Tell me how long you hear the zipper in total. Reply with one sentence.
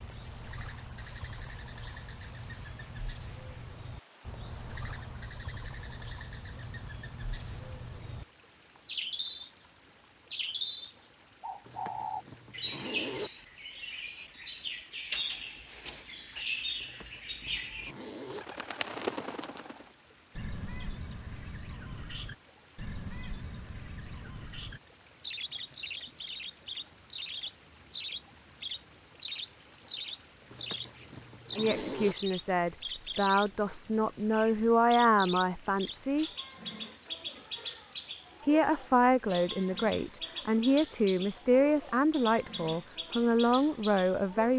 The zipper can be heard for 5 seconds in total.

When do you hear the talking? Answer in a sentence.
You can hear the talking from 31.6 to 36.3 s and from 38.5 to 44.5 s.